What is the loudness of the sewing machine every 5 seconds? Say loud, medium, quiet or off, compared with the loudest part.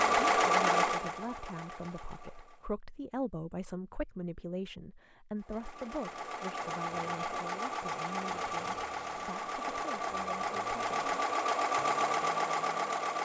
loud, medium, loud.